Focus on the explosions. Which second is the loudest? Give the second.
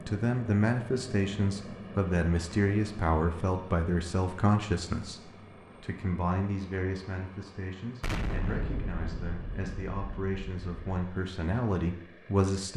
8 s.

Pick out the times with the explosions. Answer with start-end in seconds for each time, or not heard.
8.0-10.9.